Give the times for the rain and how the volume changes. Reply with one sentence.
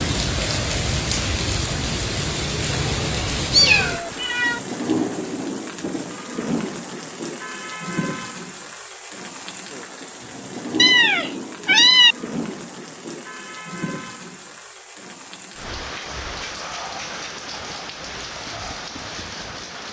The rain can be heard from 0.0 to 19.8 s, getting quieter.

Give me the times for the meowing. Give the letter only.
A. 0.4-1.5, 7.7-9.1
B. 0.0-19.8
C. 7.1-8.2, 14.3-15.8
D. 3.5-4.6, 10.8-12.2
D.